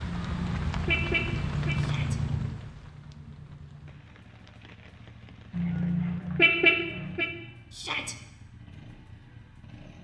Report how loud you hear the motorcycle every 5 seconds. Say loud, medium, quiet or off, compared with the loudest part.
loud, quiet.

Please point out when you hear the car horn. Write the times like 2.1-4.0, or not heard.
0.1-1.8, 5.5-7.3.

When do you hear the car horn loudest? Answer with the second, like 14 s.
7 s.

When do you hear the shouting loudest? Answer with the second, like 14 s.
8 s.